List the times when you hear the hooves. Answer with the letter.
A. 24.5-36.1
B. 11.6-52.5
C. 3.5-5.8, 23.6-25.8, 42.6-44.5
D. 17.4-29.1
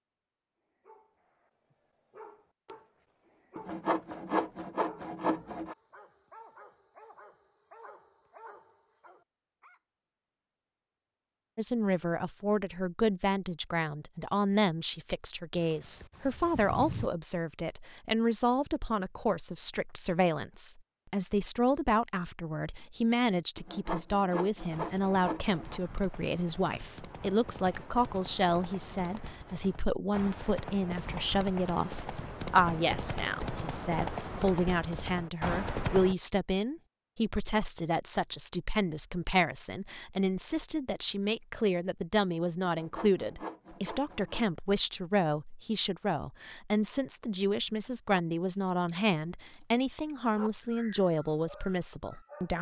A.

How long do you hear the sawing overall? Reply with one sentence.
You can hear the sawing for 6 seconds altogether.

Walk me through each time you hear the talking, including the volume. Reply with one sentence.
The talking can be heard from 11.6 to 52.5 s, at a steady volume.